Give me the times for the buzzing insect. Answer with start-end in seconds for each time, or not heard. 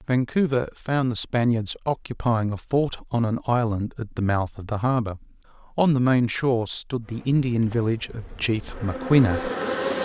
7.0-9.9.